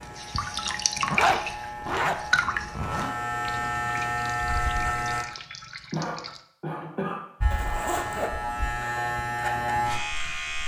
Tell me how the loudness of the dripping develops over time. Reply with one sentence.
The loudness of the dripping goes down.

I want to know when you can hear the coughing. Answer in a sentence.
You can hear the coughing from 5.9 to 7.8 s.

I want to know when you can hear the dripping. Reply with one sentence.
The dripping can be heard from 0.0 to 6.4 s.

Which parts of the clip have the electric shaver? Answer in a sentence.
The electric shaver can be heard from 0.0 to 5.2 s and from 7.4 to 10.6 s.